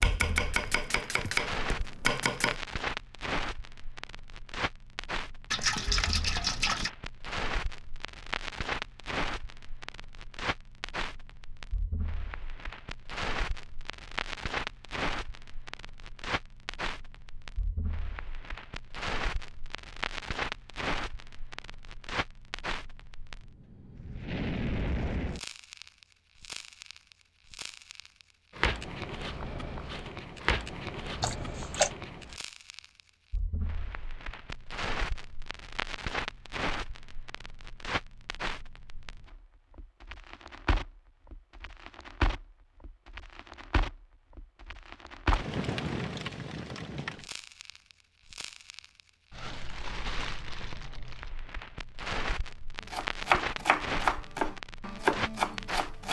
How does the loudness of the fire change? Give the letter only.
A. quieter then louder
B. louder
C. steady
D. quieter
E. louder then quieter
C.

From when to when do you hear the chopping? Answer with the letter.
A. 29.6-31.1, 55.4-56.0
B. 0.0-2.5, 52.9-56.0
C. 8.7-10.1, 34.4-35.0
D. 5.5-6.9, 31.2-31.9
B.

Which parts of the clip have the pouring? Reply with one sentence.
You can hear the pouring from 5.5 to 6.9 s and from 31.2 to 31.9 s.